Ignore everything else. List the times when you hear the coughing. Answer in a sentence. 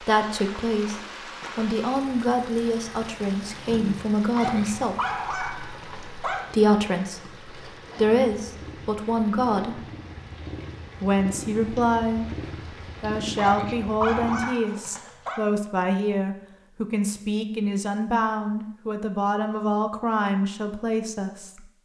You can't hear the coughing here.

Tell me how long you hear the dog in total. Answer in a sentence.
You can hear the dog for 4 seconds altogether.